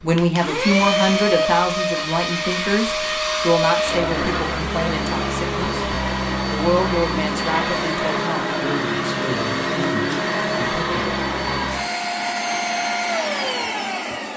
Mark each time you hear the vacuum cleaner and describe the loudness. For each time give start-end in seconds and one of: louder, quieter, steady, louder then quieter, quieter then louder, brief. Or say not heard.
0.0-14.3 steady.